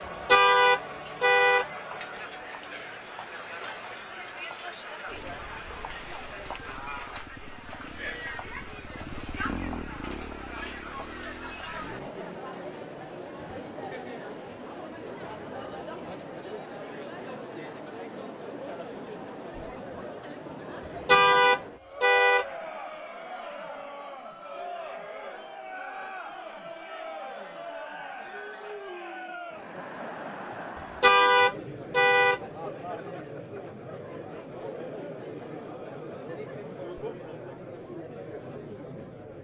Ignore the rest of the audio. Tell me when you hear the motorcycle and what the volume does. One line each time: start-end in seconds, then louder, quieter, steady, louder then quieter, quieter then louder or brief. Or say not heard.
5.0-12.2 louder then quieter.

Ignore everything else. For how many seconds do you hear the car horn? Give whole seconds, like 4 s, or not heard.
4 s.